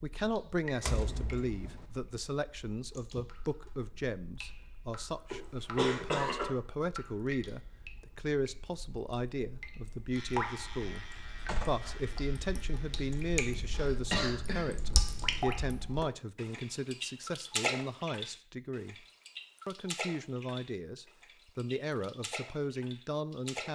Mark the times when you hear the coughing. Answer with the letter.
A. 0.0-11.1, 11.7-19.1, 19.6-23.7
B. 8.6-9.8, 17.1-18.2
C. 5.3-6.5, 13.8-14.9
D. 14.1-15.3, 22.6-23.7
C.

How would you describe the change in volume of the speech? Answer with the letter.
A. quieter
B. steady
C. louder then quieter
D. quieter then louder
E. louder
B.